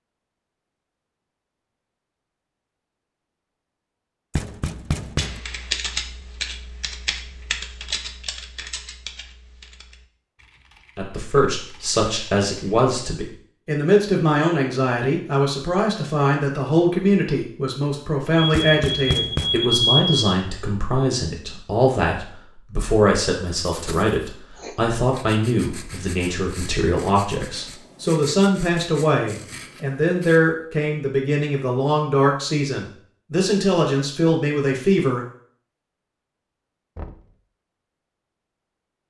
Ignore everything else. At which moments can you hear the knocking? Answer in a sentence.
The knocking can be heard from 4.3 to 5.4 s, from 18.5 to 19.6 s and from 37.0 to 37.4 s.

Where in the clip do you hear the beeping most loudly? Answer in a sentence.
The volume of the beeping peaks at 20 seconds.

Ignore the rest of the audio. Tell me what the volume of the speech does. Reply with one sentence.
The loudness of the speech stays about the same.